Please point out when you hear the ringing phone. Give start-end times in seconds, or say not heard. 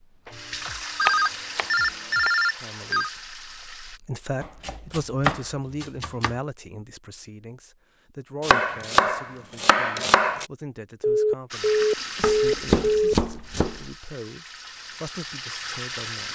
0.9-3.1, 11.0-13.2.